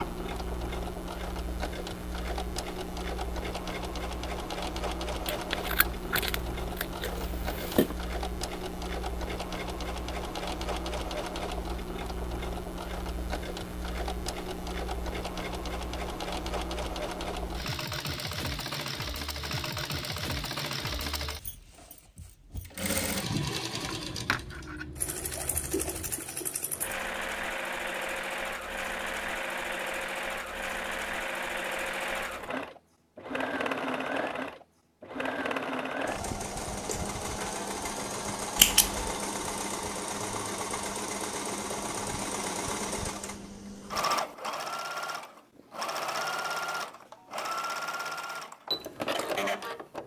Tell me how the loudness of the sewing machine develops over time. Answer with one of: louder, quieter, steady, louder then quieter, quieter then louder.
steady.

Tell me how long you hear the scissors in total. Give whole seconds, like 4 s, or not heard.
6 s.